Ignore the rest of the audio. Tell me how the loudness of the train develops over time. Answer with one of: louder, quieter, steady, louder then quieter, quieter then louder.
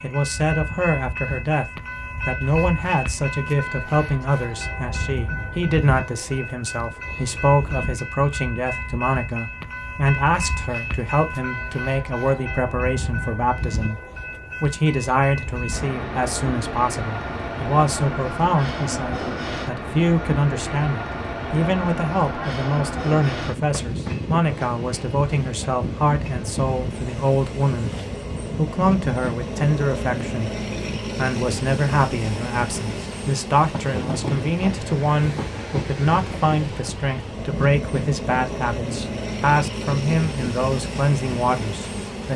steady.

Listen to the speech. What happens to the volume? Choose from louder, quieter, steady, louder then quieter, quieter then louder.
steady.